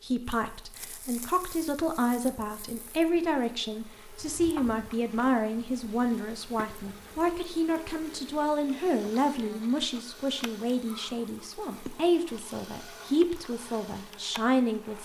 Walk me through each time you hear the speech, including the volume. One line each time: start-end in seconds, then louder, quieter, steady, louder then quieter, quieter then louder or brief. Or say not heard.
0.0-14.9 steady.